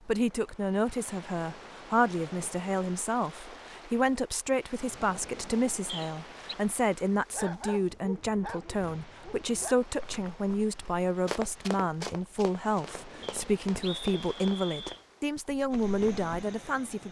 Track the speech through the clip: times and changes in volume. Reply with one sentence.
The speech can be heard from 0.1 to 17.0 s, at a steady volume.